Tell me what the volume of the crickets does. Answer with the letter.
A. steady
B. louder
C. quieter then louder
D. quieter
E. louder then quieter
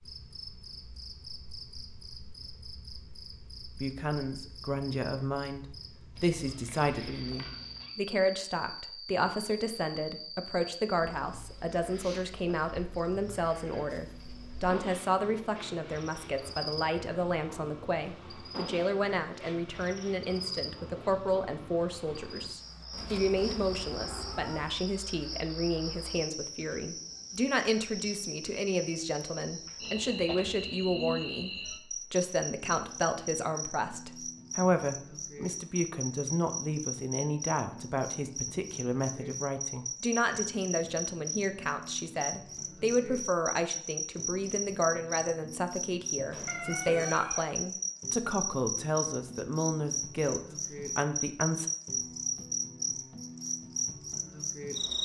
B.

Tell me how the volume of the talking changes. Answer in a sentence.
The loudness of the talking stays about the same.